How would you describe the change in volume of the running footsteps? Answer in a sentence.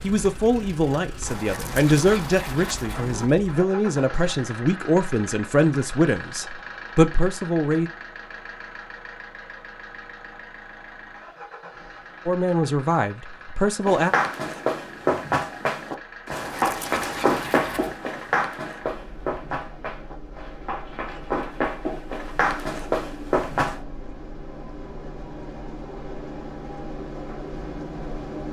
The volume of the running footsteps goes down, then up.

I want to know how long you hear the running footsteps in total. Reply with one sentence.
You can hear the running footsteps for 10 seconds altogether.